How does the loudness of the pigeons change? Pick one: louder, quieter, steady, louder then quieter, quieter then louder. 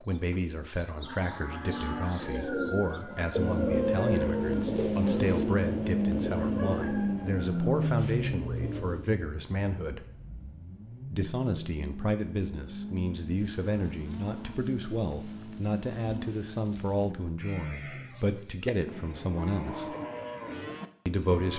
quieter.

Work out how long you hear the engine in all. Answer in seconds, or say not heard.
15 s.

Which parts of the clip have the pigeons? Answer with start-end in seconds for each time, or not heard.
2.1-9.1.